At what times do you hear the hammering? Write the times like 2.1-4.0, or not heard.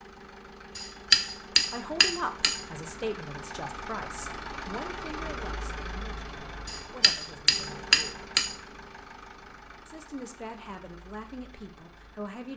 0.8-2.6, 6.7-8.6.